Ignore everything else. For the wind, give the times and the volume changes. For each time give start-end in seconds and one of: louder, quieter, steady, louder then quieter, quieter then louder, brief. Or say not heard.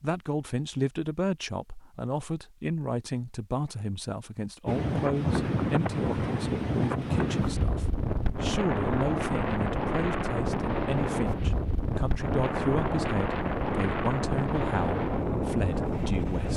4.7-16.5 steady.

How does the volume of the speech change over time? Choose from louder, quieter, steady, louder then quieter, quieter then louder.
steady.